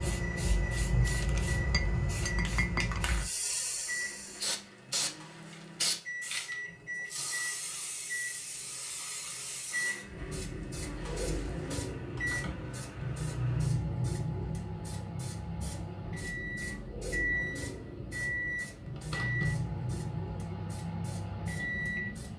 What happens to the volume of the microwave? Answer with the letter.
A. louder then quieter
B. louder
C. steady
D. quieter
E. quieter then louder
B.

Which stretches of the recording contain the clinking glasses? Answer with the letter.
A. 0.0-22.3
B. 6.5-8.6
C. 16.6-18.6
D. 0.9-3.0
D.